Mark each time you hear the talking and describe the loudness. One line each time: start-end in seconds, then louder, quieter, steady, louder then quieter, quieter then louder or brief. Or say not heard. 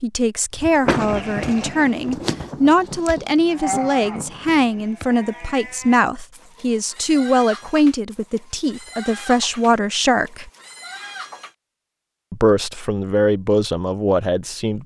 0.0-10.5 steady
12.3-14.8 brief.